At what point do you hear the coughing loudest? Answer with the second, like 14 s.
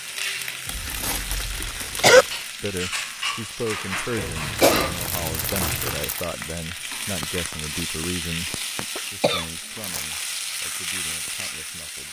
2 s.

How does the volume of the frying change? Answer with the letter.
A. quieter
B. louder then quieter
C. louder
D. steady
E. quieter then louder
D.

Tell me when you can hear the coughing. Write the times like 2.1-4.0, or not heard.
0.7-2.2, 4.2-6.0, 8.9-9.4.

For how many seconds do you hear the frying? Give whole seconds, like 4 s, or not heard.
12 s.